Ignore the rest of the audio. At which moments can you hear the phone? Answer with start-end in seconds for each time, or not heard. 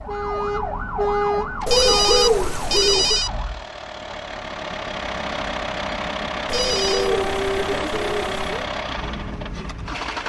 1.7-3.3, 6.5-7.1.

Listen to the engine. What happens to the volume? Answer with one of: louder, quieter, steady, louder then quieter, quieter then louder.
louder.